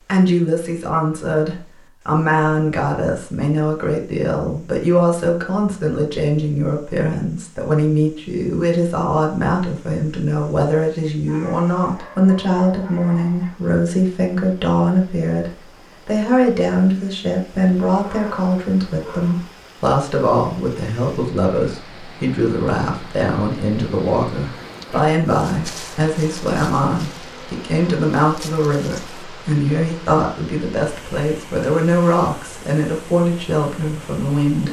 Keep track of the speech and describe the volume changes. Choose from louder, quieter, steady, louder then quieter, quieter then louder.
steady.